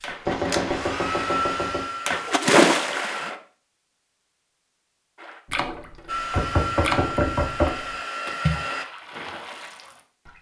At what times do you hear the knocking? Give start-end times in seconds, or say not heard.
0.2-1.9, 6.3-7.7.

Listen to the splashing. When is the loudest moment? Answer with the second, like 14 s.
3 s.